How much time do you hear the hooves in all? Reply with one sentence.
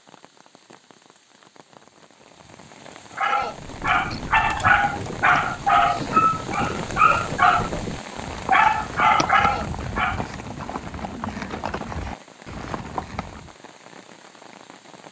You can hear the hooves for 10 seconds altogether.